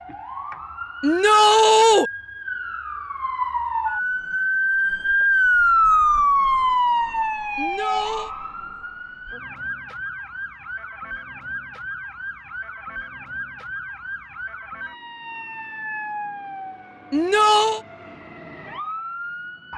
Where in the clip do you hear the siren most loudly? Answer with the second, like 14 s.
6 s.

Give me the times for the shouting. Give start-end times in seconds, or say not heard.
1.0-2.1, 7.5-8.3, 17.1-17.8.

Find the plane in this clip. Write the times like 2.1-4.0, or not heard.
not heard.